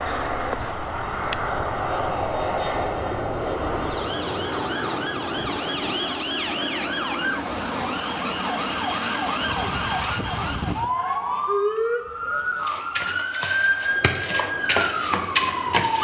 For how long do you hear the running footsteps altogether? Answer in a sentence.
The running footsteps can't be heard in this clip.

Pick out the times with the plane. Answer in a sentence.
You can hear the plane from 0.0 to 9.8 s and from 13.5 to 16.0 s.